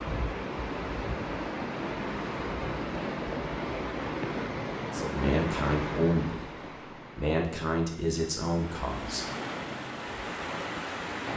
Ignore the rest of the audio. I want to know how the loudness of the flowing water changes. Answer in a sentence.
The loudness of the flowing water goes down, then up.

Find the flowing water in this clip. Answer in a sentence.
You can hear the flowing water from 0.0 to 11.3 s.